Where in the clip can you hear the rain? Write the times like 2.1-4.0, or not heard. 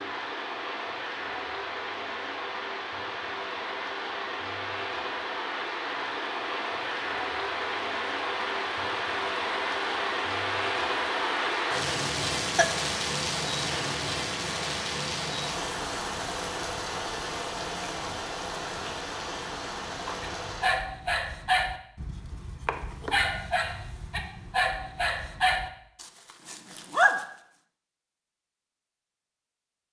0.0-20.8.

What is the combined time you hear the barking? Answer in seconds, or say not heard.
7 s.